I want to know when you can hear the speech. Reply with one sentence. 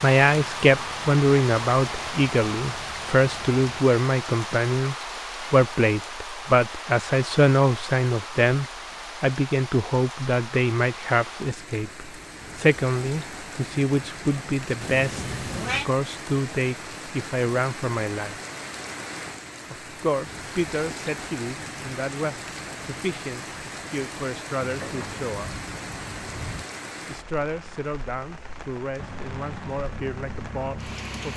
You can hear the speech from 0.0 to 18.4 s, from 19.7 to 25.6 s and from 27.1 to 31.3 s.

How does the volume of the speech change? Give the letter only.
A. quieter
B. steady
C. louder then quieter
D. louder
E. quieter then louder
A.